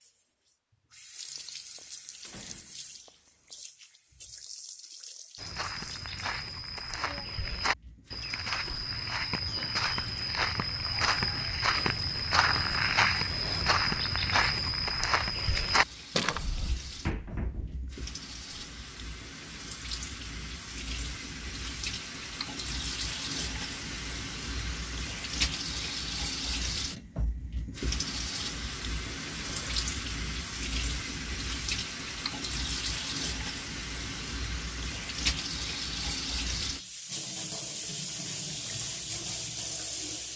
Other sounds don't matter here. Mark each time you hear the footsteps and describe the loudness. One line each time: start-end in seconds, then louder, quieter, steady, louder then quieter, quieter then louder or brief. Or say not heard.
5.3-16.7 louder.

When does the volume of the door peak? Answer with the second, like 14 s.
17 s.